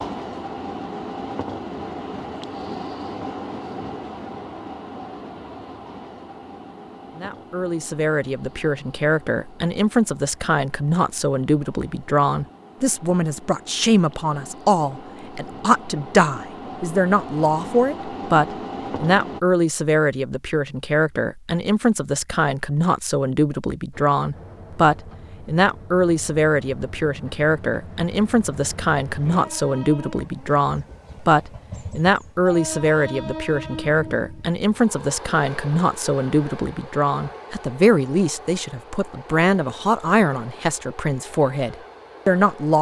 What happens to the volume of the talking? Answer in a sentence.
The loudness of the talking stays about the same.